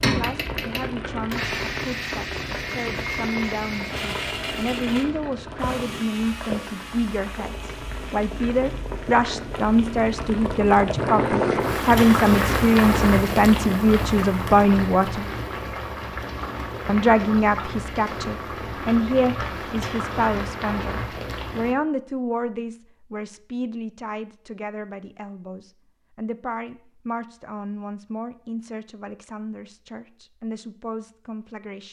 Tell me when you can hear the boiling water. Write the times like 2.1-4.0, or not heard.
0.0-21.8.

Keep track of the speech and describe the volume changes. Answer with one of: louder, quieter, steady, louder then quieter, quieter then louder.
louder then quieter.